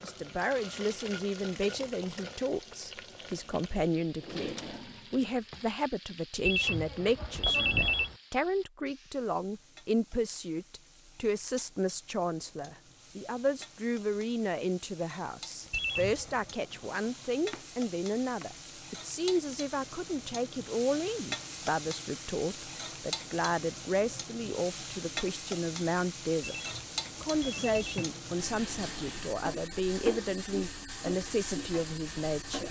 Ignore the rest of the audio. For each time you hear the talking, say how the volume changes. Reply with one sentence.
You can hear the talking from 0.0 to 32.6 s, at a steady volume.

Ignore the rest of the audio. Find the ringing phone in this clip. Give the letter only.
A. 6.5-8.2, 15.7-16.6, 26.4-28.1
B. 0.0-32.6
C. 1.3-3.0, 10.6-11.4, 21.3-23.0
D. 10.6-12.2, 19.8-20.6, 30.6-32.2
A.